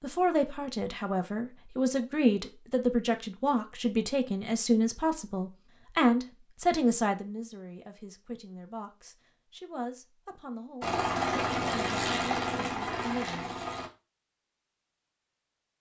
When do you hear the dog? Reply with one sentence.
You can't hear the dog here.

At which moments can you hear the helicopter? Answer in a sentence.
You can hear the helicopter from 10.8 to 13.9 s.